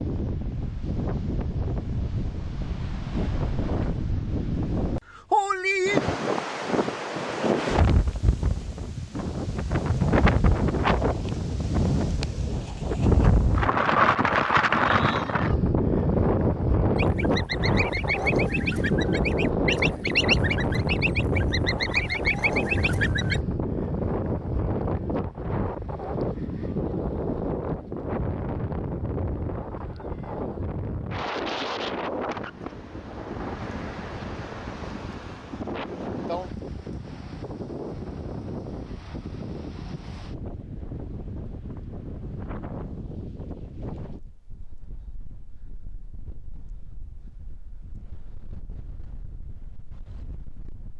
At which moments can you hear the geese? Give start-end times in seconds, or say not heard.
16.9-23.4.